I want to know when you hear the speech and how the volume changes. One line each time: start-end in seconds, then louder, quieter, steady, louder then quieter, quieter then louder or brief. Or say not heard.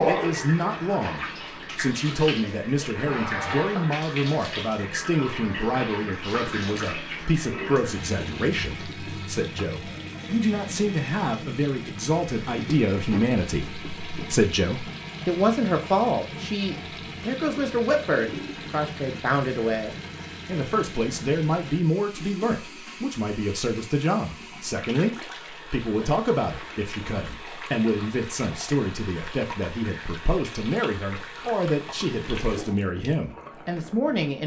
0.1-34.4 steady.